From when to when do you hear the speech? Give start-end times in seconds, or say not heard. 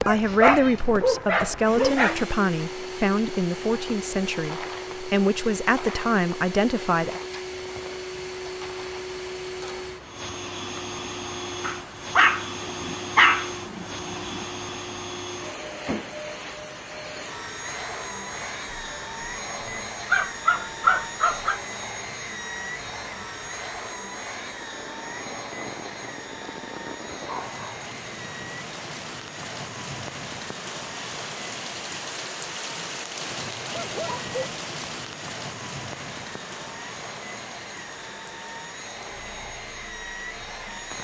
0.0-7.2.